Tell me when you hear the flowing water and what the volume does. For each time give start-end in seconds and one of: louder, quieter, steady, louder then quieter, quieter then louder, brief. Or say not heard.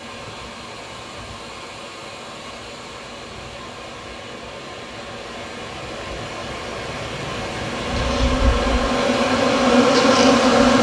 0.0-10.7 louder.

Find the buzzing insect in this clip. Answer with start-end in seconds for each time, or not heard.
7.8-10.7.